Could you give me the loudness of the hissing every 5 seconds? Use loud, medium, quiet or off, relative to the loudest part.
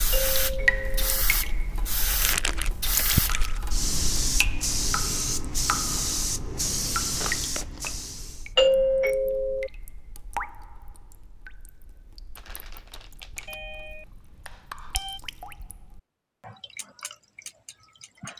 loud, loud, off, off.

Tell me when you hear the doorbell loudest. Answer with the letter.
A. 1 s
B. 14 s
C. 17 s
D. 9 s
D.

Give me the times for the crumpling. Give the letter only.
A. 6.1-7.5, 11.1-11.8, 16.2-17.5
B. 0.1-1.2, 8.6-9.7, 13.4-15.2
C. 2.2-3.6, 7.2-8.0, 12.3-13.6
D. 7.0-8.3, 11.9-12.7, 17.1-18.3
C.